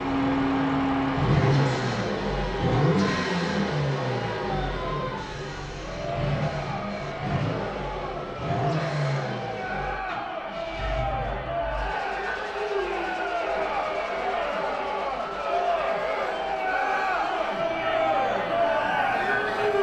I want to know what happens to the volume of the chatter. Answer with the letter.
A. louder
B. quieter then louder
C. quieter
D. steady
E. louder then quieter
A.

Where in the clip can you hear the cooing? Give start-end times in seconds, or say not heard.
not heard.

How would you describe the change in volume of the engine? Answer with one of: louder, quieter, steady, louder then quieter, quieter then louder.
quieter.